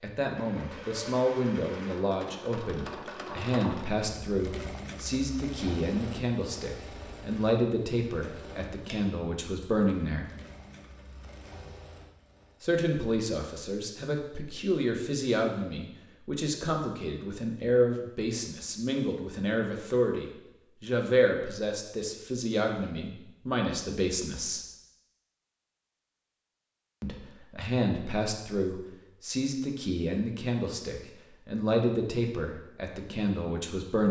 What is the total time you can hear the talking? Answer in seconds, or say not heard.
29 s.